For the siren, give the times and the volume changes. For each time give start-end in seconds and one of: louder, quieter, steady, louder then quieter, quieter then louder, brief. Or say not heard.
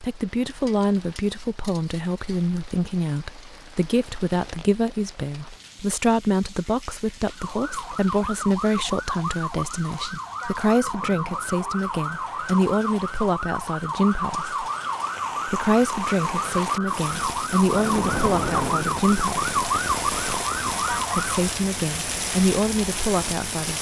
7.2-21.5 louder.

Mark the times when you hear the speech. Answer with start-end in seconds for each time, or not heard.
0.0-14.7, 15.4-19.6, 21.1-23.7.